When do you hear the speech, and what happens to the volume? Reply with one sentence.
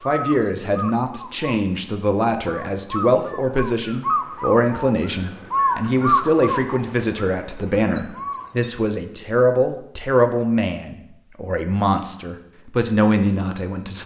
You can hear the speech from 0.0 to 14.0 s, at a steady volume.